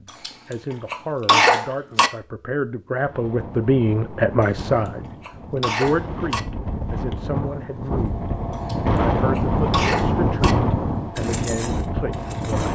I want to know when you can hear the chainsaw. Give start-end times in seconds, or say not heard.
11.2-12.6.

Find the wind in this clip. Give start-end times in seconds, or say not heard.
3.0-12.6.